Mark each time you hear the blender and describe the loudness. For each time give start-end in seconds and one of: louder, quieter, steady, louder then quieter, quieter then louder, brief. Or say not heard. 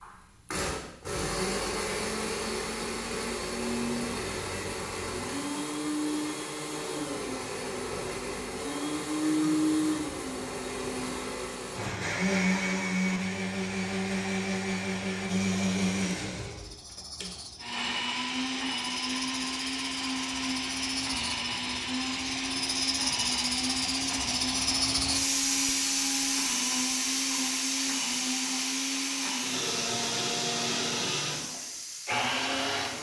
0.0-32.9 steady.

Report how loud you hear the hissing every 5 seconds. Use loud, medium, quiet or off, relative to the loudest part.
off, off, off, medium, loud, loud, medium.